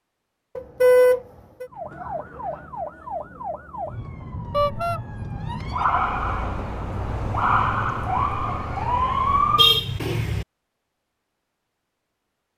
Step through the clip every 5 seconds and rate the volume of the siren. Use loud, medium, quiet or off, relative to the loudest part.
medium, loud, off.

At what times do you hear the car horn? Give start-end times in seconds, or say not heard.
0.6-1.6, 4.5-5.0, 9.6-10.4.